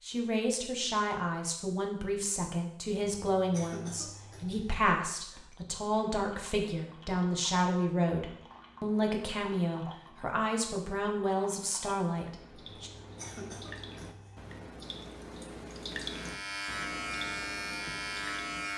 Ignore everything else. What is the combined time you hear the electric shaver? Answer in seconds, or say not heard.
3 s.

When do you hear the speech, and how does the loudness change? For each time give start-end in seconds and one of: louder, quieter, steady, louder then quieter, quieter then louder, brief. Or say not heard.
0.0-12.9 steady.